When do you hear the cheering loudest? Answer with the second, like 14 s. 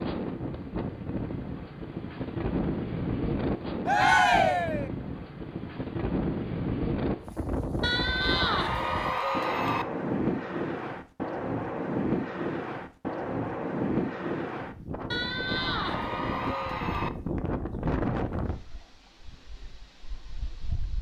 4 s.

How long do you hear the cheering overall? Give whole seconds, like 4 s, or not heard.
5 s.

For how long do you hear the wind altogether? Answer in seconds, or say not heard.
21 s.